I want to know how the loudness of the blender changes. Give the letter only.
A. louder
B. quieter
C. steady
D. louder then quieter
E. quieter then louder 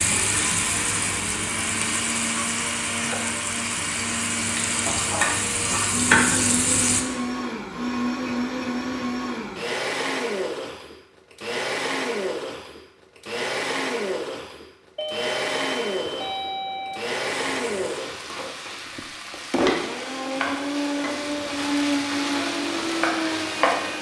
C.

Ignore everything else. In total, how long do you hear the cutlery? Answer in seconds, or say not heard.
not heard.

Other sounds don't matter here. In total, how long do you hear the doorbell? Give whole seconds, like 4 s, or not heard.
2 s.